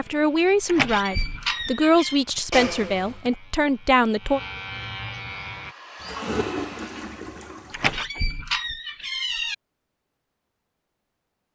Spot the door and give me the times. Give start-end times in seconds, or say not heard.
0.7-2.2, 7.7-9.6.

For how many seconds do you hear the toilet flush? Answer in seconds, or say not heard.
3 s.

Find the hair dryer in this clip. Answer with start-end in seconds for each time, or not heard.
5.5-7.3.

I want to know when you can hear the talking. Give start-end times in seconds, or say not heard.
0.0-4.4.